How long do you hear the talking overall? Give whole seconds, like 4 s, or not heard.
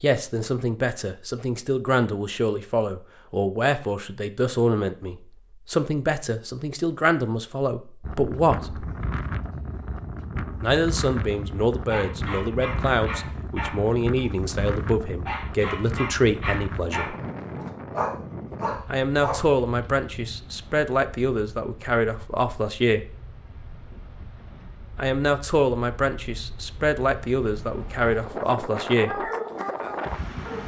24 s.